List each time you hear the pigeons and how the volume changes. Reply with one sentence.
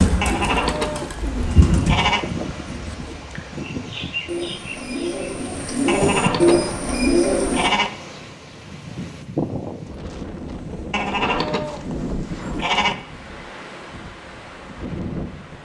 The pigeons can be heard from 0.0 to 7.7 s, getting quieter then louder.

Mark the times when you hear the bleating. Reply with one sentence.
The bleating can be heard from 0.2 to 2.2 s, from 5.8 to 7.9 s and from 10.9 to 12.9 s.